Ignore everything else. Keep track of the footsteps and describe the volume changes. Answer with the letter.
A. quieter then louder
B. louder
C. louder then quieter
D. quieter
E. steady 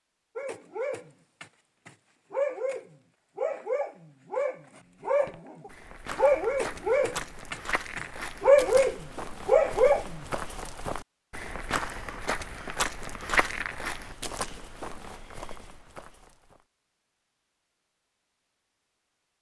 C.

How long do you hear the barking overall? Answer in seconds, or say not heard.
10 s.